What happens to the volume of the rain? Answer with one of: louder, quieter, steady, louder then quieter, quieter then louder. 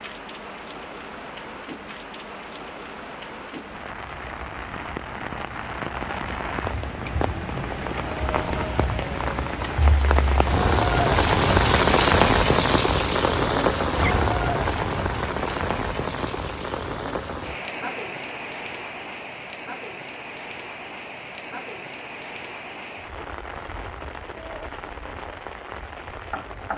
louder then quieter.